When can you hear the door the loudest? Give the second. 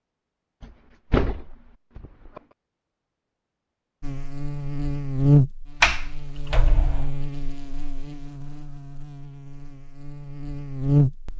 6 s.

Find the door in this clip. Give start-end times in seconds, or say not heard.
0.6-2.4, 5.8-7.1.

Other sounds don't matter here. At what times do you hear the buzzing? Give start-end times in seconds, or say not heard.
4.0-11.3.